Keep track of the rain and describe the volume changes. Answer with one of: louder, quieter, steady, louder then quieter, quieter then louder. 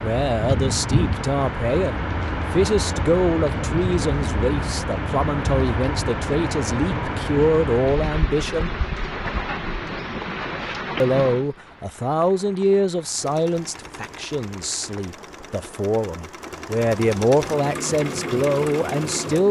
quieter.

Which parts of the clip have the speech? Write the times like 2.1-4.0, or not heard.
0.0-8.7, 11.0-19.4.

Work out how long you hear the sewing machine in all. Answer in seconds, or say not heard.
6 s.